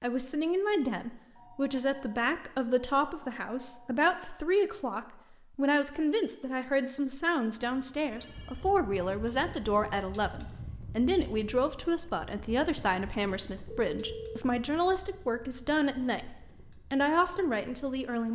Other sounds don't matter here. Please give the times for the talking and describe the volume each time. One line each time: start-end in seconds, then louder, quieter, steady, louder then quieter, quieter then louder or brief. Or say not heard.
0.0-18.3 steady.